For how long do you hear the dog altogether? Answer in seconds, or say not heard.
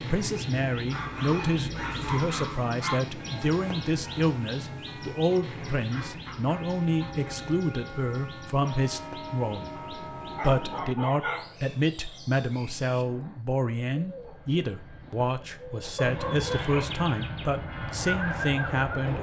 6 s.